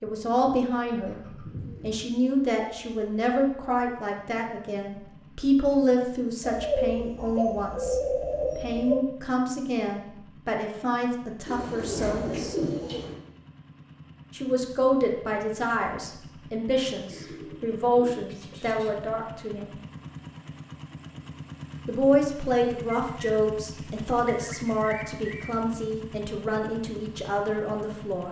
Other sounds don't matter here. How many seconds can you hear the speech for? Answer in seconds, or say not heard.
24 s.